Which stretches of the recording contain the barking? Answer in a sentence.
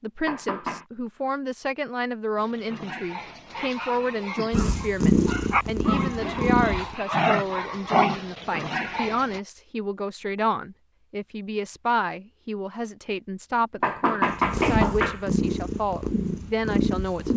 The barking can be heard from 2.4 to 9.4 s.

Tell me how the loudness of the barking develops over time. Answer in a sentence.
The loudness of the barking goes up.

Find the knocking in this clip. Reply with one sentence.
You can hear the knocking from 0.2 to 0.8 s and from 13.8 to 15.2 s.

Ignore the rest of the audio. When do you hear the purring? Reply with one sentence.
You can hear the purring from 4.5 to 7.0 s and from 14.2 to 17.3 s.